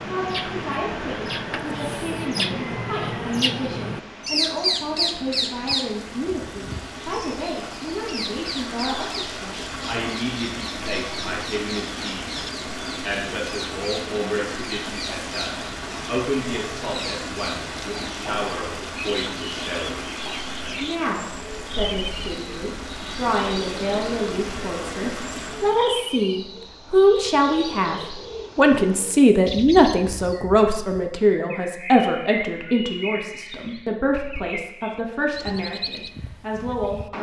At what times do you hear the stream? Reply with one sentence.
The stream can be heard from 0.0 to 25.9 s.